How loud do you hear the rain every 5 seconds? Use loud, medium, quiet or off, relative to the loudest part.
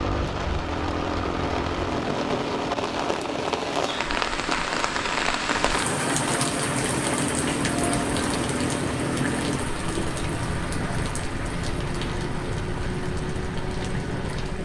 loud, loud, medium.